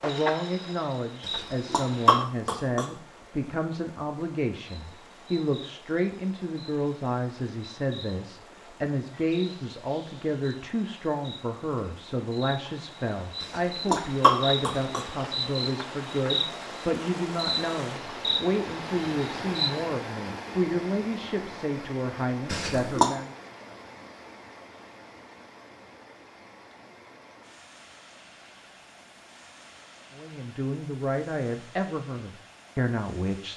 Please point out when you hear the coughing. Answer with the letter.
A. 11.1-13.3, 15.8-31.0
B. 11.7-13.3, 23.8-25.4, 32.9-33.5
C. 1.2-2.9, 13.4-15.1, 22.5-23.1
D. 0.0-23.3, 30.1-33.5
C.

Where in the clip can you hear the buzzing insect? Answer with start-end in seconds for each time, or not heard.
0.0-2.2, 4.7-19.9.